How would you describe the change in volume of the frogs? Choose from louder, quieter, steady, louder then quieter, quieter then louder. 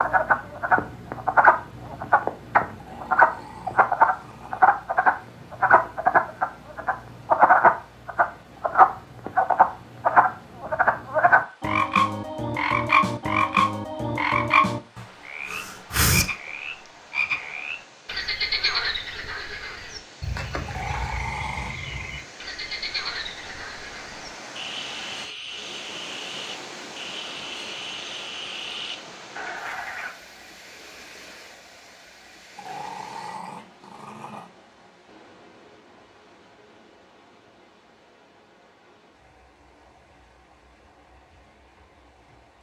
quieter.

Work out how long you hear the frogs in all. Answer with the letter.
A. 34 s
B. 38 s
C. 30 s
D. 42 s
C.